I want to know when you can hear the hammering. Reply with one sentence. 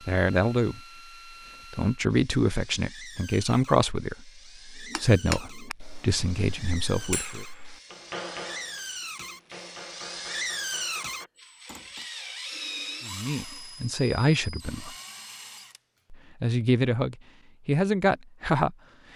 The hammering can be heard from 4.8 to 12.1 s.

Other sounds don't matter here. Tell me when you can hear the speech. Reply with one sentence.
The speech can be heard from 0.1 to 0.8 s, from 1.7 to 7.5 s, from 13.1 to 14.9 s and from 16.1 to 19.1 s.